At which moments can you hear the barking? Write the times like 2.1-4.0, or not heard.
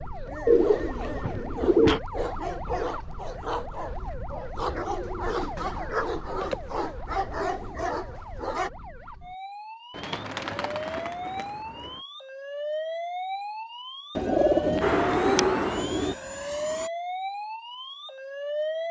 0.2-8.7.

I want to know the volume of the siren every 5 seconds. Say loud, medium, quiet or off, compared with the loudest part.
medium, medium, loud, loud.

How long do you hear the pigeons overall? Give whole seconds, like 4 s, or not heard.
8 s.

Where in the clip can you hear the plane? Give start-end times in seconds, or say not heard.
14.8-16.9.